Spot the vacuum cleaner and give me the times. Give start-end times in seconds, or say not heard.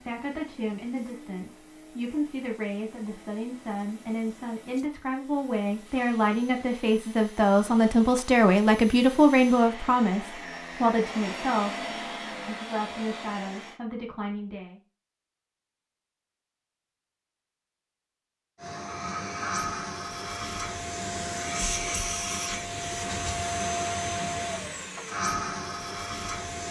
0.0-13.8, 18.6-26.6.